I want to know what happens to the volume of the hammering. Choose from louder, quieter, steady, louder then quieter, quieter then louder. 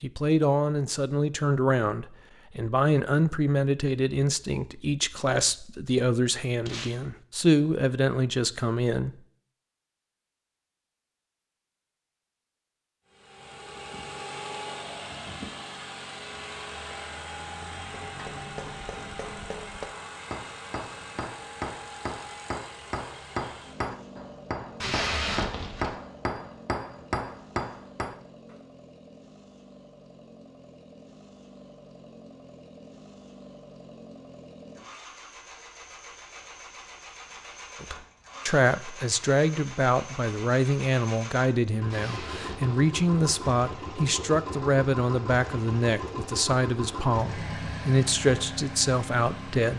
louder.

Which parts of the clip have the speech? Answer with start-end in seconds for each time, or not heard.
0.0-9.1, 37.8-49.7.